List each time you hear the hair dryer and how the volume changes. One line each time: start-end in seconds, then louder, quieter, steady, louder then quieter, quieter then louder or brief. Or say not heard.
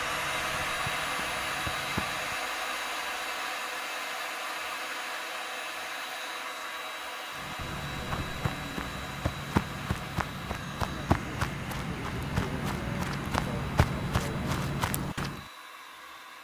0.0-16.3 quieter.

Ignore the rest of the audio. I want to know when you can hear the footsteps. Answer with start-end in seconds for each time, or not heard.
0.0-2.4, 7.3-15.4.